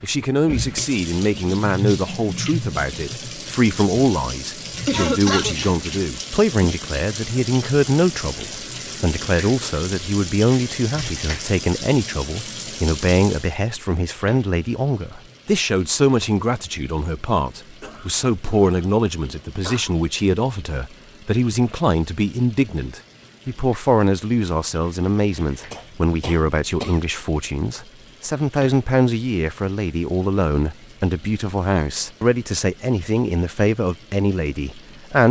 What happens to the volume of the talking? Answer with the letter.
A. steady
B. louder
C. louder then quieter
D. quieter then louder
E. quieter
A.